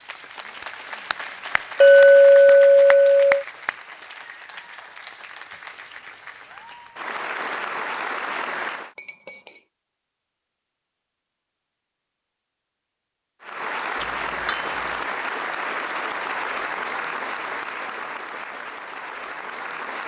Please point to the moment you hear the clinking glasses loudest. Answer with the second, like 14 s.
2 s.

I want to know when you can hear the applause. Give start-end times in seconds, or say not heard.
0.0-8.9, 13.4-20.0.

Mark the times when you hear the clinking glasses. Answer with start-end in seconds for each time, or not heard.
1.8-3.5, 8.9-9.6, 14.0-14.8.